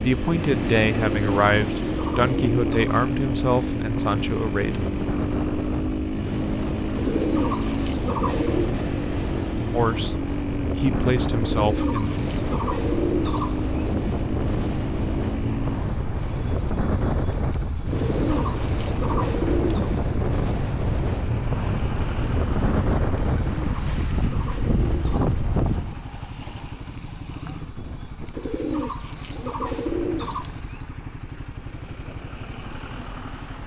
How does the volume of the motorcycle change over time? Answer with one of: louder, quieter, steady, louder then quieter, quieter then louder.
quieter.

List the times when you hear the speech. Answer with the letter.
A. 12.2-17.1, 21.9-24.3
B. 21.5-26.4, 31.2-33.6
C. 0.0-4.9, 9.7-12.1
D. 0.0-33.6
C.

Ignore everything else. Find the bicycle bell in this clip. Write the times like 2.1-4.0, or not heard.
not heard.